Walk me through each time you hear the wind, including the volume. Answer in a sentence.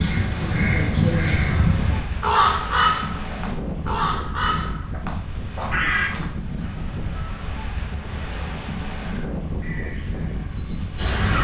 You can hear the wind from 0.0 to 11.2 s, at a steady volume.